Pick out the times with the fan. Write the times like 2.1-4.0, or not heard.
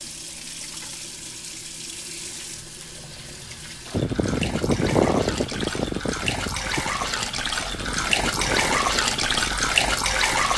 3.9-10.5.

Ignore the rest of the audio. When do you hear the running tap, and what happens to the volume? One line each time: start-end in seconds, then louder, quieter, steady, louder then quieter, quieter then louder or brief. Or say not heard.
0.0-10.5 louder.